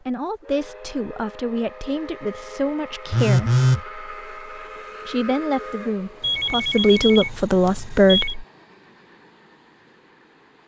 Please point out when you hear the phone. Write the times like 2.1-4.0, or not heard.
3.1-3.8, 6.2-8.3.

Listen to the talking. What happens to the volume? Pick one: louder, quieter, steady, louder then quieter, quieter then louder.
louder.